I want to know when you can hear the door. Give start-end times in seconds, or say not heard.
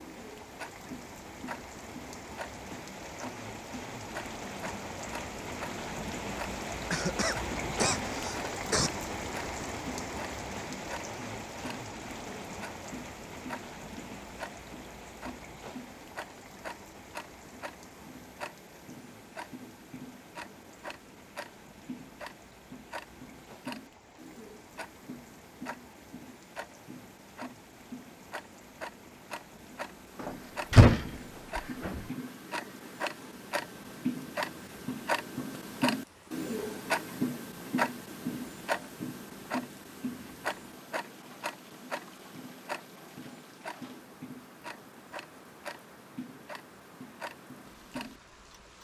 30.2-32.0.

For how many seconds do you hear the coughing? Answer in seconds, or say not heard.
2 s.